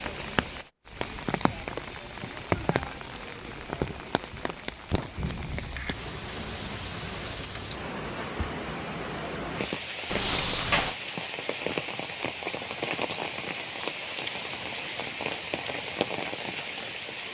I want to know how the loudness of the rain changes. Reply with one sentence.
The loudness of the rain stays about the same.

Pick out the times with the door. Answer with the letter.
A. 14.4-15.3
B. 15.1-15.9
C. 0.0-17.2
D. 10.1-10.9
D.